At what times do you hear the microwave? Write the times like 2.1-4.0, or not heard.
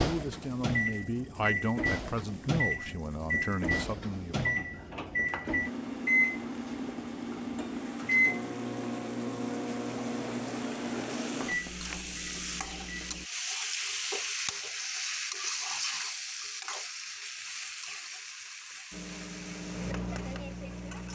0.0-13.2, 18.9-21.0.